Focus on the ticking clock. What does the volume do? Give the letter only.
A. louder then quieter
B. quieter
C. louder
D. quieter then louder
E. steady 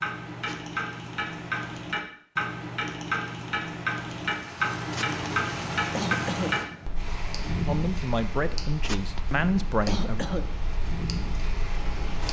B.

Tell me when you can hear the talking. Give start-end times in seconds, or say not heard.
7.7-10.2.